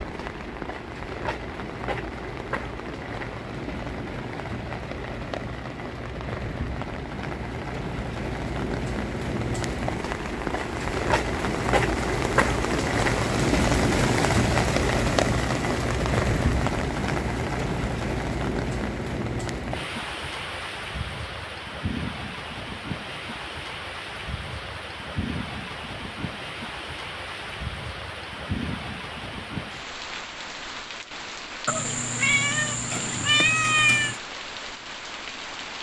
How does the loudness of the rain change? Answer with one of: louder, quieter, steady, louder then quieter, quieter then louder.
louder then quieter.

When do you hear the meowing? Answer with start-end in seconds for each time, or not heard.
31.6-34.2.